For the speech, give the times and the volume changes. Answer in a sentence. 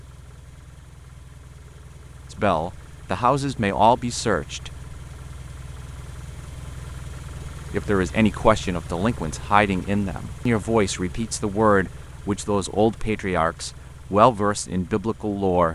The speech can be heard briefly from 2.4 to 4.7 s; and from 7.7 to 15.7 s, at a steady volume.